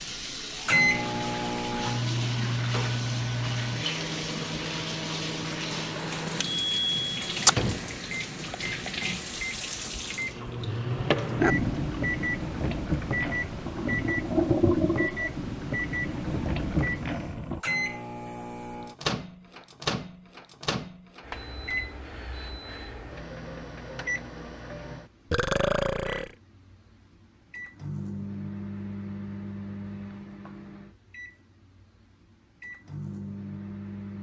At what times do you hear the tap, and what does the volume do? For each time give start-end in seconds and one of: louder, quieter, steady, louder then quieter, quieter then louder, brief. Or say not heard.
0.0-17.6 louder.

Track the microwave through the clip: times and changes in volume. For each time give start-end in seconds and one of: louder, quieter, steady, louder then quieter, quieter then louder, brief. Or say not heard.
0.0-34.1 quieter.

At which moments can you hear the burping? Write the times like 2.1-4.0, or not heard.
25.3-26.4.